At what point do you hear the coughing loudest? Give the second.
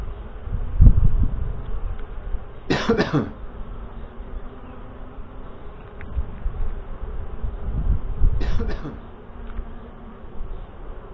3 s.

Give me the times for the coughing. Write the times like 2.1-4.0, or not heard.
2.7-3.4, 8.4-9.1.